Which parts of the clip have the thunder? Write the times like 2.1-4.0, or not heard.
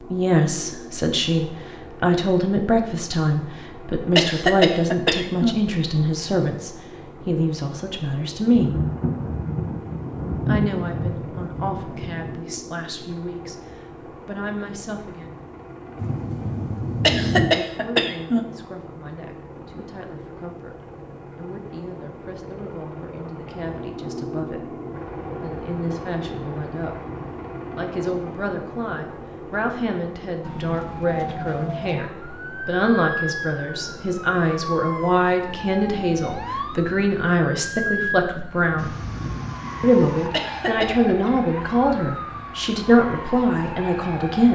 8.5-12.4, 15.9-17.5, 38.8-40.3.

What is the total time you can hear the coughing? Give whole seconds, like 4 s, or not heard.
4 s.